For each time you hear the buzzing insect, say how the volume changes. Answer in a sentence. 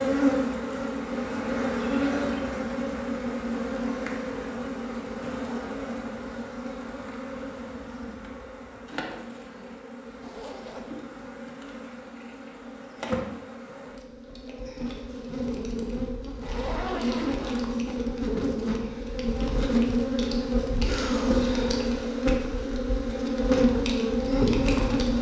You can hear the buzzing insect from 0.0 to 25.1 s, getting quieter then louder.